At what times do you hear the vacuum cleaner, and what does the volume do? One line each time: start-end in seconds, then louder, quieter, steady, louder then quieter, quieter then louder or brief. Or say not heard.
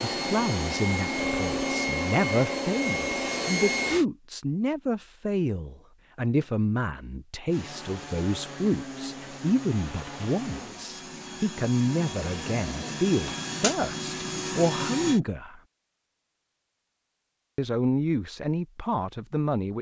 0.0-4.0 steady
7.5-15.2 louder.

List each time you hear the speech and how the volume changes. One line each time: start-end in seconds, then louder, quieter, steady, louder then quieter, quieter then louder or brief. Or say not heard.
0.0-15.6 steady
17.6-19.7 brief.